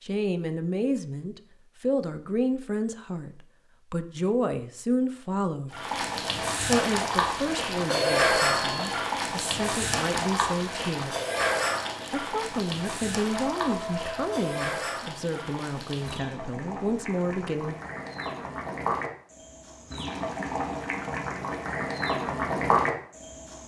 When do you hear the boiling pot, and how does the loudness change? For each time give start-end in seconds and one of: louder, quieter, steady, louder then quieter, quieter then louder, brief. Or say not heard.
5.7-23.6 quieter then louder.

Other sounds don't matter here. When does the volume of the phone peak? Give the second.
8 s.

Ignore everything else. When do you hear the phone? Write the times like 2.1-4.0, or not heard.
7.8-9.1, 13.2-14.7.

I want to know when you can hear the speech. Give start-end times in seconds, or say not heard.
0.0-5.8, 6.7-11.2, 12.1-17.8.